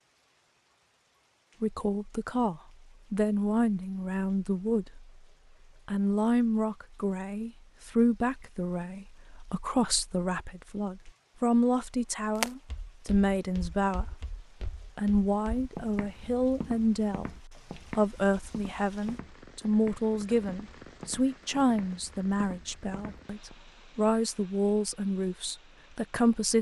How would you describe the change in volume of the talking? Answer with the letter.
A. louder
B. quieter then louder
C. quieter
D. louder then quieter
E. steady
E.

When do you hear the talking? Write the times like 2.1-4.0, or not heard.
1.6-5.2, 5.8-26.5.